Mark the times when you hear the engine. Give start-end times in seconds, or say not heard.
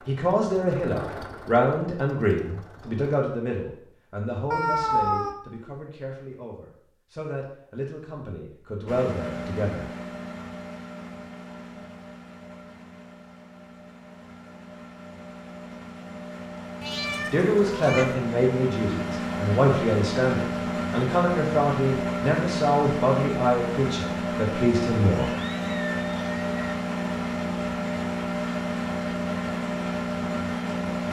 0.0-3.1, 8.8-31.0.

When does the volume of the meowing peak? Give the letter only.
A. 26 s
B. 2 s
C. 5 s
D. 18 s
C.